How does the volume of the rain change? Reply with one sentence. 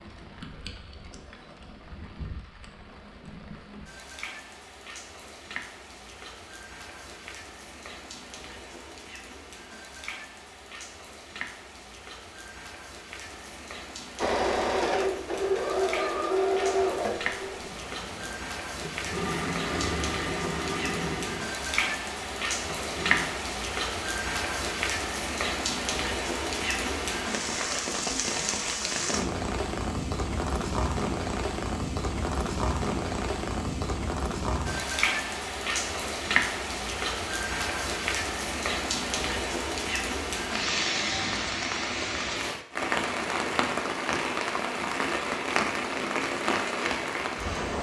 The volume of the rain goes up.